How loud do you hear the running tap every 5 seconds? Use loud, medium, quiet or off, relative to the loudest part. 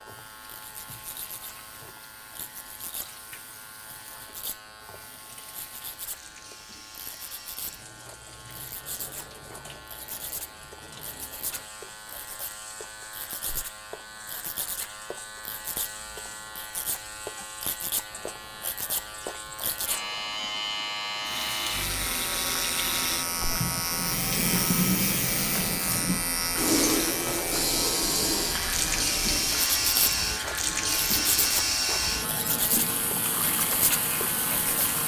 quiet, quiet, quiet, quiet, loud, loud, loud.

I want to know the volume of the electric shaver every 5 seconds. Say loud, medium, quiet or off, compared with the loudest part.
quiet, quiet, medium, medium, loud, loud, loud.